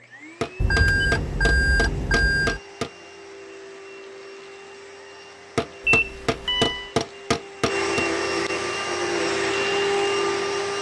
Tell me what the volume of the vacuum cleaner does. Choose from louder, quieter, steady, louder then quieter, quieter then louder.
louder.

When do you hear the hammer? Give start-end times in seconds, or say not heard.
0.4-2.9, 5.5-8.1.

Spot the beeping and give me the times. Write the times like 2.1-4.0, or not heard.
0.6-2.6, 5.8-6.9.